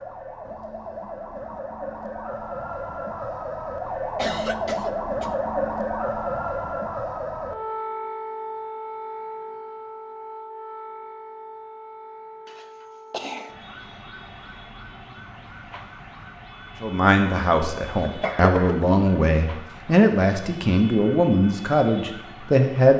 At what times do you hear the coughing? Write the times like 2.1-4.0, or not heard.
4.2-5.3, 12.4-13.6, 18.0-18.9.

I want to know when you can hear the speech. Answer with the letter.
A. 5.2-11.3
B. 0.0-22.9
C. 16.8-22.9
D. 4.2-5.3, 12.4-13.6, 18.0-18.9
C.